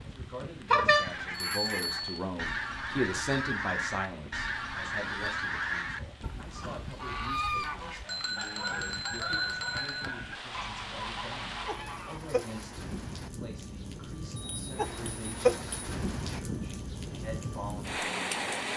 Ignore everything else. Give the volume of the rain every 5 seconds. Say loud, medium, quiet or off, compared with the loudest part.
quiet, quiet, medium, loud.